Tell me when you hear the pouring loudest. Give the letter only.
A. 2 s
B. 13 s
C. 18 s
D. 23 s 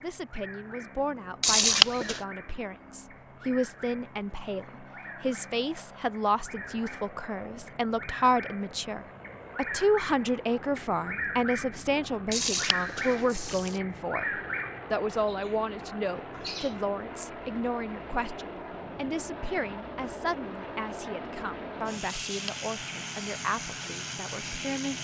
A.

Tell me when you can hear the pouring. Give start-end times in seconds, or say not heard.
1.4-2.2, 12.3-13.8, 22.1-22.7.